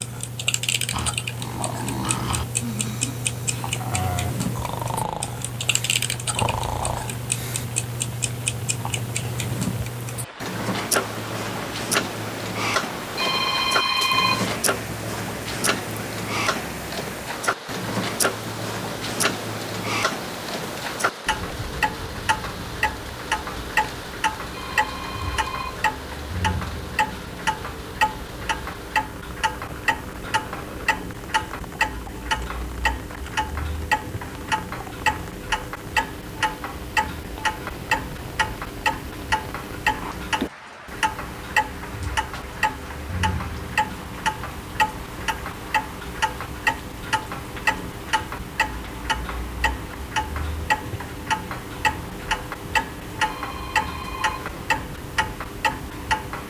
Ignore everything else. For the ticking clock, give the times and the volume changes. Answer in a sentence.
You can hear the ticking clock from 0.0 to 56.4 s, at a steady volume.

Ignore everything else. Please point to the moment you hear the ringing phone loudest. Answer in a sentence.
The volume of the ringing phone peaks at 14 seconds.